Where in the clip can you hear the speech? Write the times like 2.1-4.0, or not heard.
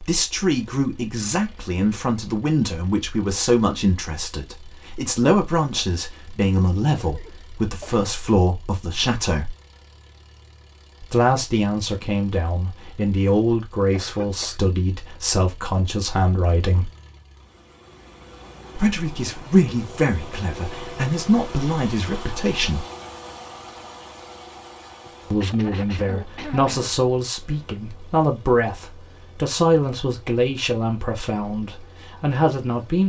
0.0-9.5, 11.0-16.9, 18.8-22.9, 25.3-33.0.